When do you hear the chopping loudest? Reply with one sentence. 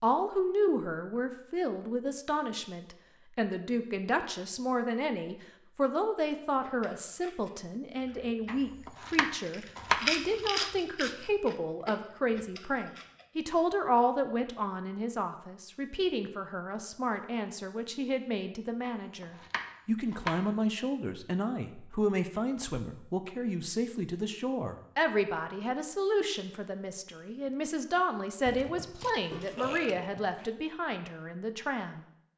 The loudest moment of the chopping is at 10 seconds.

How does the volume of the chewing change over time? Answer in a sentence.
The loudness of the chewing goes up, then down.